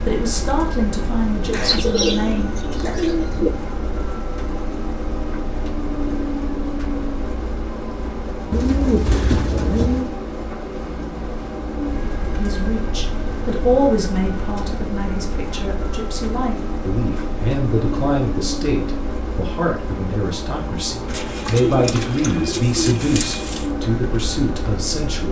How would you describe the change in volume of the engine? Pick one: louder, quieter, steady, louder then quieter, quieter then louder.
steady.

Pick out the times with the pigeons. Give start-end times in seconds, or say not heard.
1.5-3.5, 8.5-10.1, 21.1-23.7.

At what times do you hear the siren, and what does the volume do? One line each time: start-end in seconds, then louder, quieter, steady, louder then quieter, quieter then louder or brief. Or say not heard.
not heard.